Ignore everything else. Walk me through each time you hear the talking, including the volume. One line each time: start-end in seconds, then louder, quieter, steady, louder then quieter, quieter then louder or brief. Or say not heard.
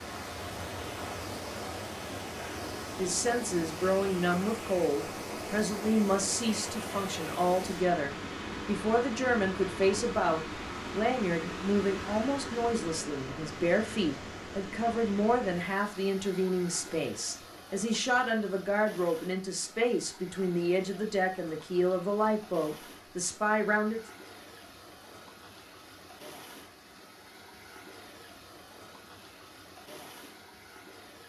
3.0-24.0 steady.